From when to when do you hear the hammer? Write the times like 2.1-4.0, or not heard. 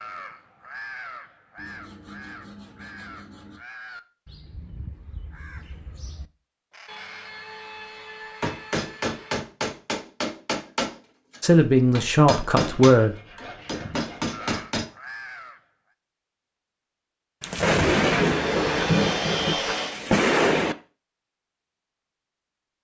8.4-14.8.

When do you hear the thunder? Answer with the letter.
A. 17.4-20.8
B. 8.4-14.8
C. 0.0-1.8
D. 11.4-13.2
A.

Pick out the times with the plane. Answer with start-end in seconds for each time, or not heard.
not heard.